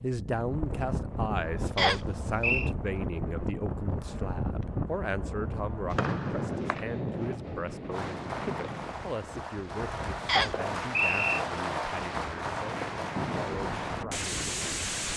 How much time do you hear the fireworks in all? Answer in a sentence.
The fireworks can be heard for 7 seconds in total.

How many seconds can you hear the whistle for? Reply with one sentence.
You can hear the whistle for 3 seconds altogether.